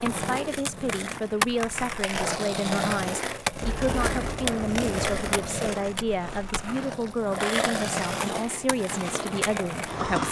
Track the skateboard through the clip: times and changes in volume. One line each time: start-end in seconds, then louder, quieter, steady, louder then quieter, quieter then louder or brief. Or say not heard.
0.0-10.2 steady.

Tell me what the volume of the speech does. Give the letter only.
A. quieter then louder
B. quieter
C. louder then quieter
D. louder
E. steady
E.